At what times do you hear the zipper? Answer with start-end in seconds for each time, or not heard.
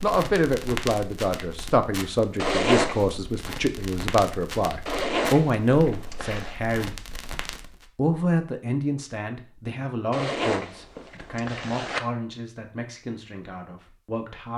2.4-3.1, 4.8-6.5, 10.1-12.0.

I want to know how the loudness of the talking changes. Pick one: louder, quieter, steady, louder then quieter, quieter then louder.
quieter.